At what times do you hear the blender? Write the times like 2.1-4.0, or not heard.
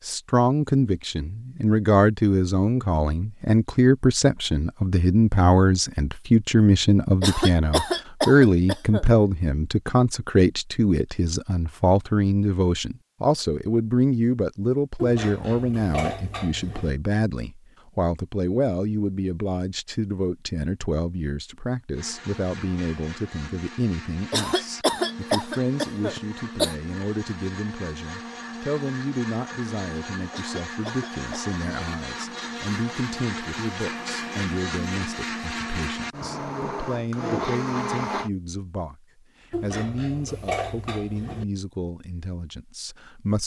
21.9-38.3.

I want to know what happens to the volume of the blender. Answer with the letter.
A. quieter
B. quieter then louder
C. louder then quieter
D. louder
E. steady
D.